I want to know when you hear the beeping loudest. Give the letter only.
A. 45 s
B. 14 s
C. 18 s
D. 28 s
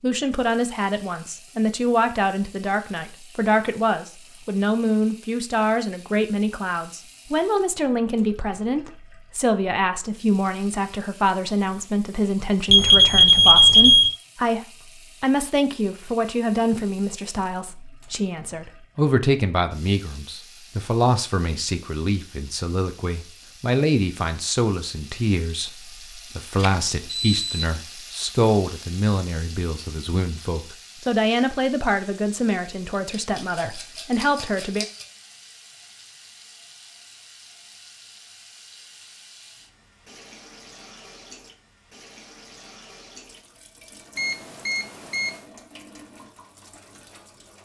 B.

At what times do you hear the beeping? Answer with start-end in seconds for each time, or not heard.
12.7-14.2, 26.6-27.6, 44.1-45.5.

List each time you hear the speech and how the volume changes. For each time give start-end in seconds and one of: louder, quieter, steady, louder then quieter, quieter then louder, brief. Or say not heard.
0.0-34.9 steady.